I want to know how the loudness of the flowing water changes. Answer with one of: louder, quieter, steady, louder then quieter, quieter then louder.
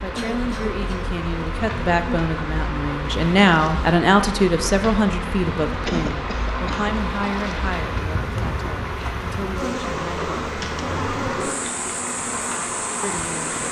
steady.